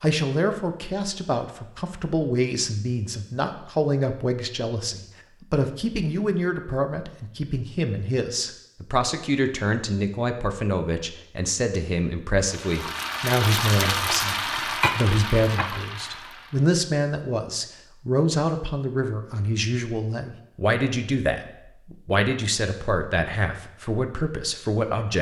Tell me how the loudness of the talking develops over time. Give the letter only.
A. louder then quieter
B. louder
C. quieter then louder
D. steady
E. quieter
D.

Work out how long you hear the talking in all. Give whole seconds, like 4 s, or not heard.
25 s.